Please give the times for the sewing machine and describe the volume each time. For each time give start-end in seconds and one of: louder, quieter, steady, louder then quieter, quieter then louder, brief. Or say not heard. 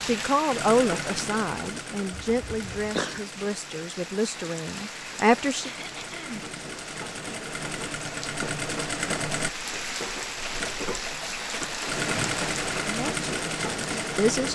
0.0-14.4 quieter then louder.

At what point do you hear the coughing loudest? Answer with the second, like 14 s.
3 s.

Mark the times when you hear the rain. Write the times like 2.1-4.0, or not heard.
0.0-14.4.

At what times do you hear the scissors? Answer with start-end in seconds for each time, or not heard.
not heard.